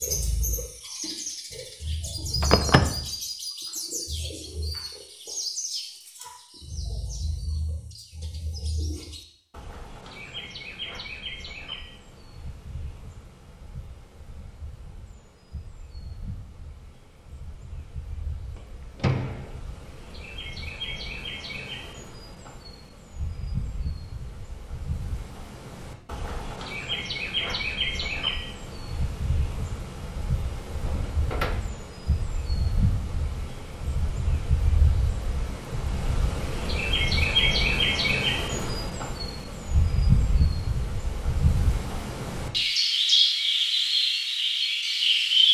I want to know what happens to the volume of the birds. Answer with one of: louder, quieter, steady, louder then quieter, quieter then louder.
quieter then louder.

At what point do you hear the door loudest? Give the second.
3 s.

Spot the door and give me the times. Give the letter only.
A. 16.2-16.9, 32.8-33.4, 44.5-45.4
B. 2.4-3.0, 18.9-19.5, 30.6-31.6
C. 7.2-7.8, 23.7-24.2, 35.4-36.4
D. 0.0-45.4
B.